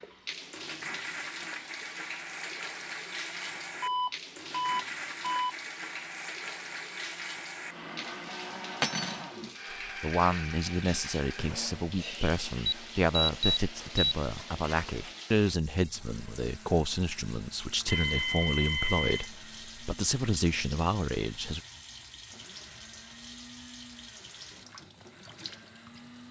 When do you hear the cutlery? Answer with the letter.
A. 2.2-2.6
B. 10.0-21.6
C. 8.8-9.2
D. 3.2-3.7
C.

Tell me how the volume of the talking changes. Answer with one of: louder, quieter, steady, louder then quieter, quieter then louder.
steady.